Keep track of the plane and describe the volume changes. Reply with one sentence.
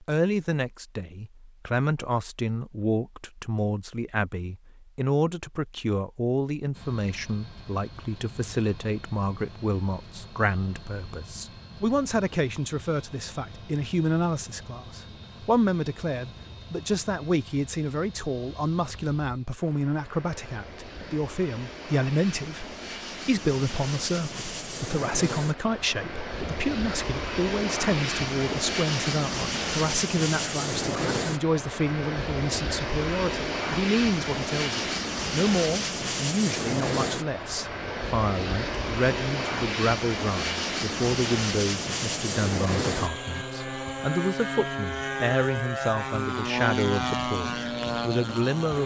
The loudness of the plane goes up.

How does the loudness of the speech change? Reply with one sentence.
The volume of the speech stays about the same.